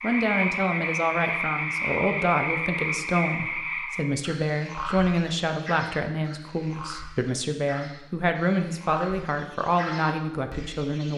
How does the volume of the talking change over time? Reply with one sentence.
The loudness of the talking stays about the same.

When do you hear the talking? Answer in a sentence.
You can hear the talking from 0.0 to 11.1 s.